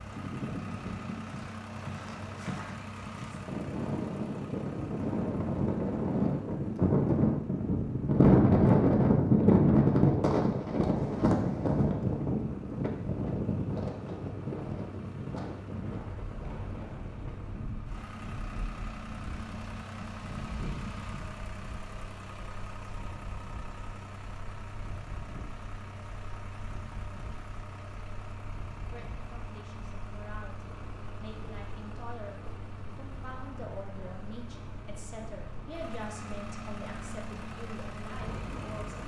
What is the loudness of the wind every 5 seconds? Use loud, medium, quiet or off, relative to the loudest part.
quiet, loud, medium, quiet, quiet, quiet, quiet, quiet.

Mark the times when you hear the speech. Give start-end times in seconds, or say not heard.
28.8-39.0.